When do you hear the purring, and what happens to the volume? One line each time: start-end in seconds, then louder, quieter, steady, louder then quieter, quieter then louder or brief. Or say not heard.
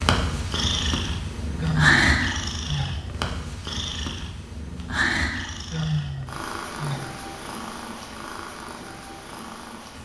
0.0-10.0 quieter.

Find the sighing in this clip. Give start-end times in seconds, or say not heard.
1.6-3.2, 5.7-7.2.